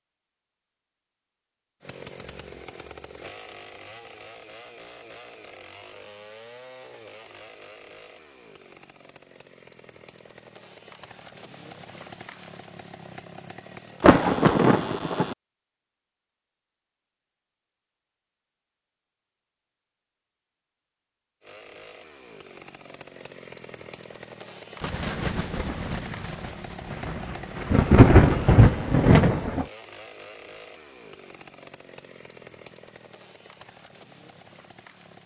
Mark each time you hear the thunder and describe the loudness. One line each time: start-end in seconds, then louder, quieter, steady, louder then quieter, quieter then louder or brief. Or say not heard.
14.0-15.3 brief
24.8-29.6 quieter then louder.